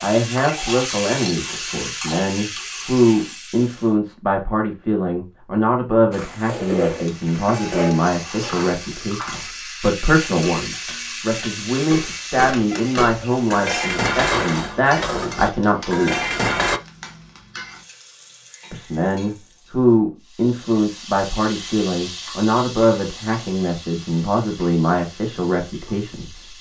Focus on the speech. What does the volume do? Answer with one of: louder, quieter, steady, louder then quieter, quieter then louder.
steady.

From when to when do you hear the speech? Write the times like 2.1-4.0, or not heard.
0.0-16.2, 18.7-26.5.